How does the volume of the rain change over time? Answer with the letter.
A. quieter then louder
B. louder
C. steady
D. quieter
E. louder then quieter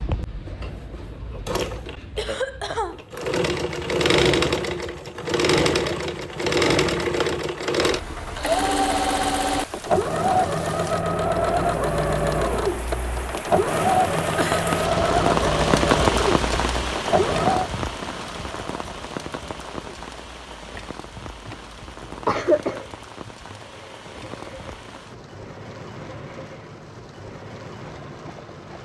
E.